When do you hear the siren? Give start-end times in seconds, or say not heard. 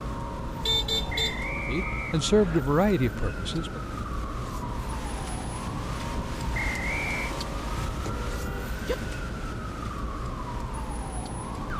0.0-11.7.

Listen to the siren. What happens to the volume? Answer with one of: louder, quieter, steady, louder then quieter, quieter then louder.
steady.